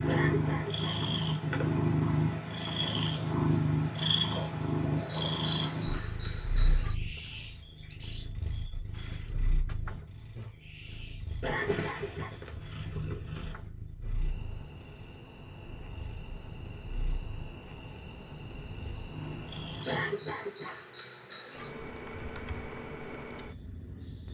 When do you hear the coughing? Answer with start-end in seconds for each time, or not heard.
0.1-1.0, 11.4-12.3, 19.9-20.8.